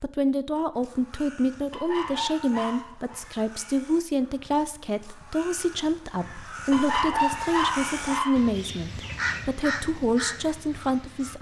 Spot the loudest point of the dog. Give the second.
7 s.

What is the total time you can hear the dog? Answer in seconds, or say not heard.
3 s.